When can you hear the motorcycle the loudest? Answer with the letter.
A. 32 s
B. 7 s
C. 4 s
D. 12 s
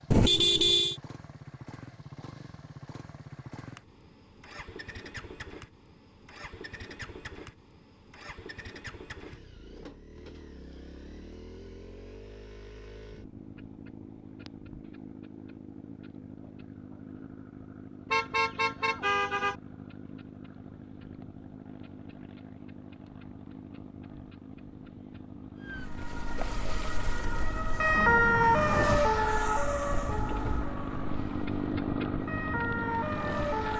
A.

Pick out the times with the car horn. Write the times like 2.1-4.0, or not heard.
0.1-0.9, 18.1-19.6, 29.9-30.8.